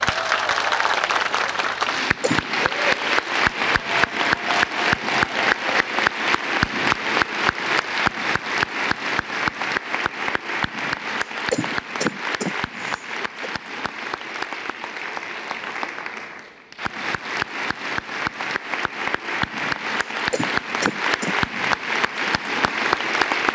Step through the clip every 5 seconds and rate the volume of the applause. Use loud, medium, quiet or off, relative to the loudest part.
loud, loud, medium, medium, loud.